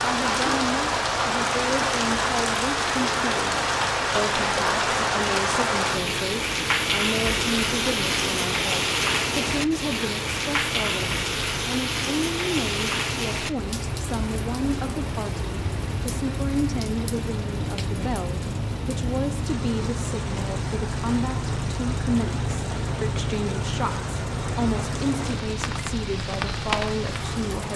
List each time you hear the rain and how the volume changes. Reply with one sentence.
The rain can be heard from 0.0 to 27.7 s, getting quieter.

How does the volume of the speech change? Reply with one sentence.
The volume of the speech stays about the same.